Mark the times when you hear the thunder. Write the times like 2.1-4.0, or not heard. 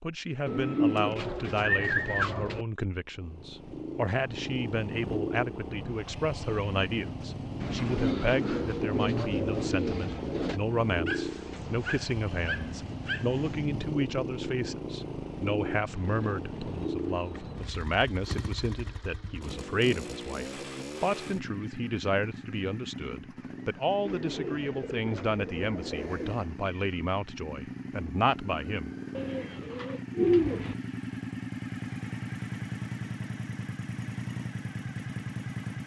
not heard.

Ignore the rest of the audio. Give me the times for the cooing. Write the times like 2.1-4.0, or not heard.
0.5-2.6, 7.6-10.6, 15.8-17.7, 24.1-26.4, 29.1-30.8.